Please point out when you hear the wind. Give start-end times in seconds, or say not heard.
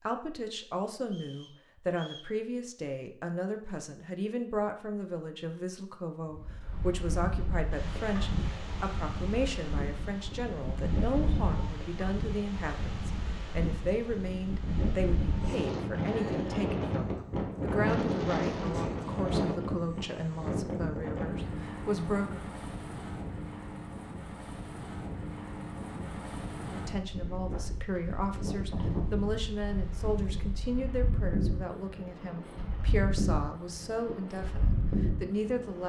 6.2-35.8.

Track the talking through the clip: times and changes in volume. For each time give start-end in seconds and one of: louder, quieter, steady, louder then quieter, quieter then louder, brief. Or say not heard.
0.1-22.4 steady
26.6-35.8 steady.